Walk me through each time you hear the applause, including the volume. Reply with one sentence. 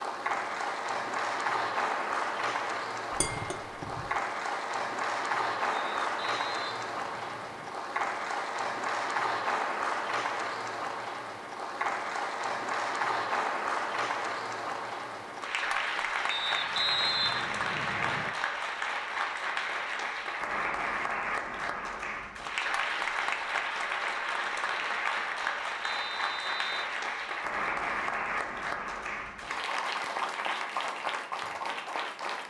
You can hear the applause from 0.0 to 32.4 s, at a steady volume.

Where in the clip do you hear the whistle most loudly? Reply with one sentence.
The volume of the whistle peaks at 17 seconds.